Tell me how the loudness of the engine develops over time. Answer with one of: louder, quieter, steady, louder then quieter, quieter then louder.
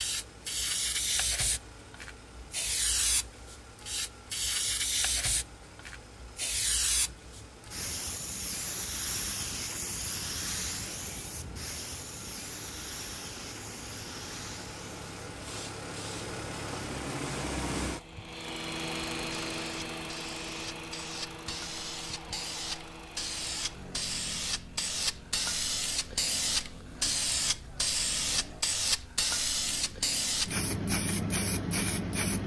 louder then quieter.